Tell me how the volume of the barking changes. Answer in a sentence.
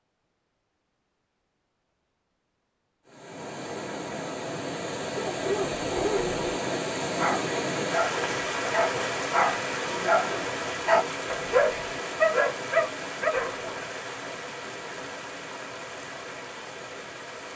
The loudness of the barking goes up.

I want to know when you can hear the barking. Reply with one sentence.
The barking can be heard from 5.2 to 13.8 s.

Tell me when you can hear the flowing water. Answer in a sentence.
You can hear the flowing water from 3.0 to 17.5 s.